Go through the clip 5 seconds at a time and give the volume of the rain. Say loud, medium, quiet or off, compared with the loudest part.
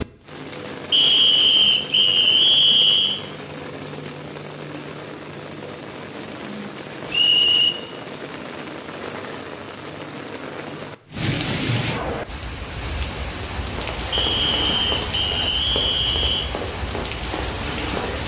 medium, medium, loud, loud.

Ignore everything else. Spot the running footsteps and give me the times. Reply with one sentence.
The running footsteps can be heard from 13.8 to 18.2 s.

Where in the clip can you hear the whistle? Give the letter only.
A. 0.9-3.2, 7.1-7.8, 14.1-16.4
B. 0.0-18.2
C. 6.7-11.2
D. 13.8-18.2
A.